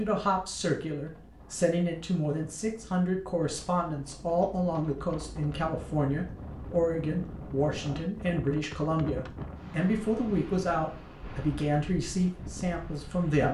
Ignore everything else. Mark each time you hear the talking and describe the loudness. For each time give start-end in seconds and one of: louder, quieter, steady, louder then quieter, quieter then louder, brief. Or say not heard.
0.0-13.5 steady.